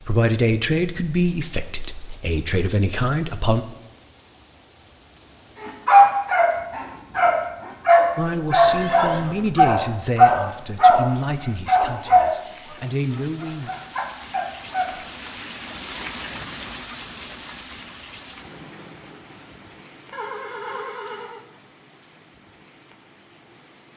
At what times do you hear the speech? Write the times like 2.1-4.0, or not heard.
0.0-3.6, 8.2-13.7.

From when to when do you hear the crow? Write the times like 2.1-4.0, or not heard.
not heard.